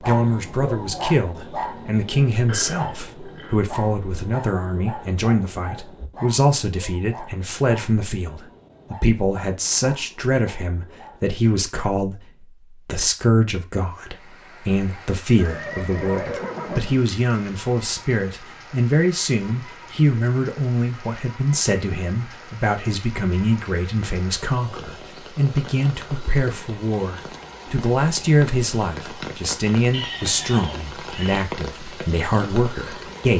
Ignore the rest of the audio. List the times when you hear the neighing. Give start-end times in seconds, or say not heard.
2.5-3.5, 15.3-17.1, 29.9-31.4.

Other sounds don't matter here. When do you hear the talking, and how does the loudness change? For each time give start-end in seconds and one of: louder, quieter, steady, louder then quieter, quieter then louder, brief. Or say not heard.
0.0-33.3 steady.